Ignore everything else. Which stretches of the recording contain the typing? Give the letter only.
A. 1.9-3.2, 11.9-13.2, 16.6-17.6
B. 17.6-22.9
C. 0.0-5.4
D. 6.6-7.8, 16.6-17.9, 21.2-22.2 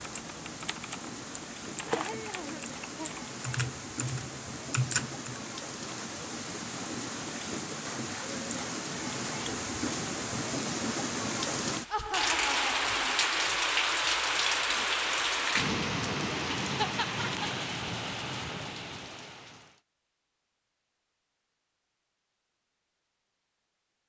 C.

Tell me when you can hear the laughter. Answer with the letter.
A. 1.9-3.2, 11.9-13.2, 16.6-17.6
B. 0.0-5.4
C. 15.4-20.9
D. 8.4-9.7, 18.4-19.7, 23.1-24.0
A.